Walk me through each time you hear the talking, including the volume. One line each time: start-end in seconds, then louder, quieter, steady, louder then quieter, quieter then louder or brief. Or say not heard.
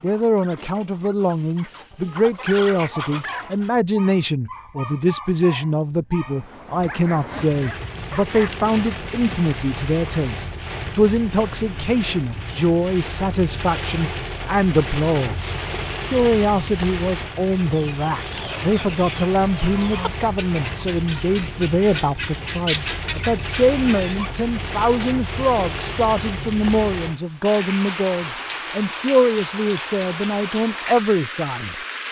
0.0-31.8 steady.